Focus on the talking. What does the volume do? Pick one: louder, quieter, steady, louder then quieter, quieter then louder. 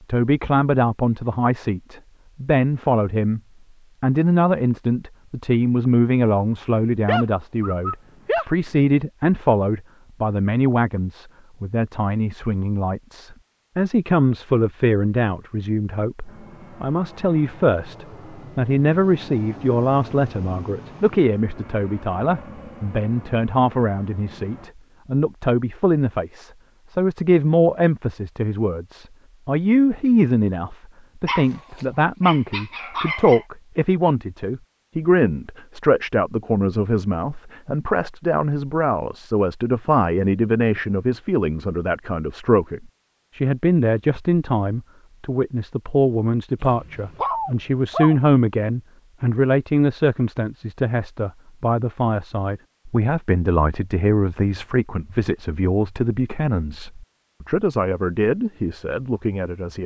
steady.